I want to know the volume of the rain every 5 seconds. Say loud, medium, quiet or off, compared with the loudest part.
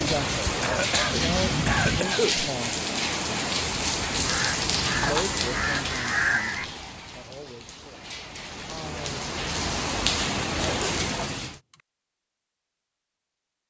loud, medium, loud.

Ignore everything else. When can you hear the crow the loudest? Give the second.
6 s.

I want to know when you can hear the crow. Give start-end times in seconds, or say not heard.
4.2-6.7.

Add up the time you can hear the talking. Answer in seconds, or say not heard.
7 s.